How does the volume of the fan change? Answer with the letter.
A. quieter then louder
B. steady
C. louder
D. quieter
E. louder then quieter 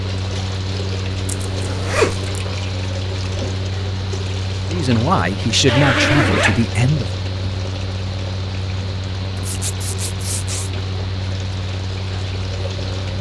B.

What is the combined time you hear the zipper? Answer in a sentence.
You can hear the zipper for 4 seconds altogether.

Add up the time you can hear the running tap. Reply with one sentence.
You can hear the running tap for 13 seconds altogether.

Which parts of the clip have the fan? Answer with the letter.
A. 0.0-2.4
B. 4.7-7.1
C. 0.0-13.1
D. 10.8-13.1
C.